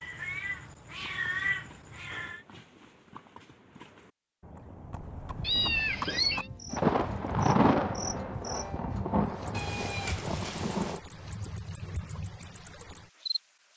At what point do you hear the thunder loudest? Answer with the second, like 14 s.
8 s.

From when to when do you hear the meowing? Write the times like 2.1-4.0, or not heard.
0.0-2.4, 5.4-6.5, 9.5-11.0.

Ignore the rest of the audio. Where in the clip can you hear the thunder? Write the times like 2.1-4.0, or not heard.
6.8-11.0.